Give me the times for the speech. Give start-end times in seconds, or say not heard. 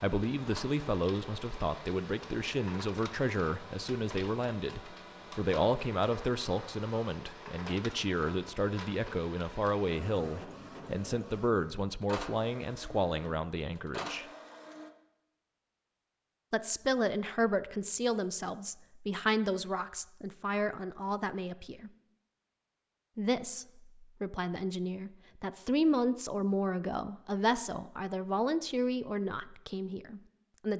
0.0-14.2, 16.5-21.9, 23.1-30.7.